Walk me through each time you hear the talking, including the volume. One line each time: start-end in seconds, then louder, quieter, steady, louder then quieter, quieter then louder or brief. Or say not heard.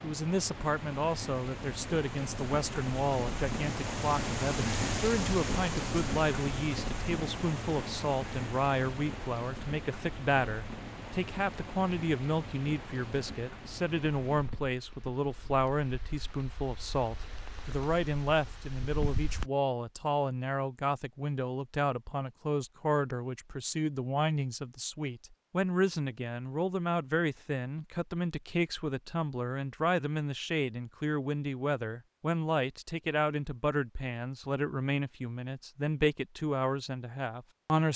0.0-37.9 steady.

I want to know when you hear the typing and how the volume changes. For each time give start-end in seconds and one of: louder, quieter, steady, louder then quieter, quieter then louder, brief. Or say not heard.
not heard.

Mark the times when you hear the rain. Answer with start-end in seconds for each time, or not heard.
0.0-19.5.